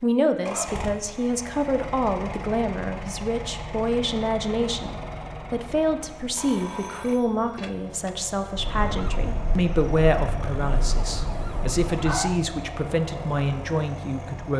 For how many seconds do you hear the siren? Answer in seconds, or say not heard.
4 s.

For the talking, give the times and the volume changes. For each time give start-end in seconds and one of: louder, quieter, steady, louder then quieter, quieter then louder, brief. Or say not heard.
0.0-14.5 steady.